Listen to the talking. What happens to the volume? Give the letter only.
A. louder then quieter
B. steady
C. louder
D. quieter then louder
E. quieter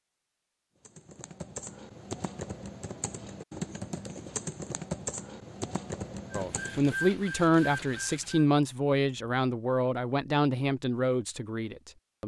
E.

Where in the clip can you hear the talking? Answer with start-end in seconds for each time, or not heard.
6.3-12.2.